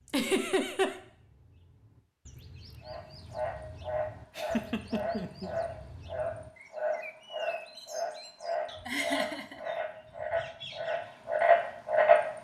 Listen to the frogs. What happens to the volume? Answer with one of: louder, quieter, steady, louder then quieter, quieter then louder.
louder.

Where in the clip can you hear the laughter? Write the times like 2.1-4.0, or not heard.
0.1-0.9, 4.3-5.5, 8.8-9.6.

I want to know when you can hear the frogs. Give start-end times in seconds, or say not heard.
2.8-12.2.